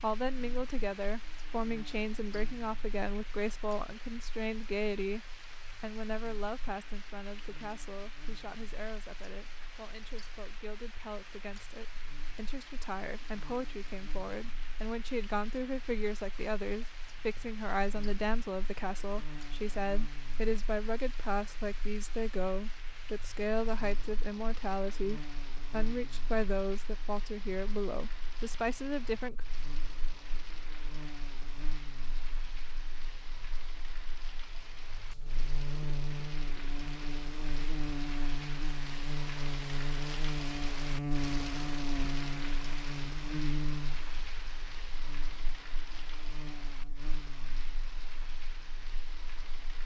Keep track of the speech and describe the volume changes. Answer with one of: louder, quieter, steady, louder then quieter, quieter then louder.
quieter then louder.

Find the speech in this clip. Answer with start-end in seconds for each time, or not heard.
0.0-29.4.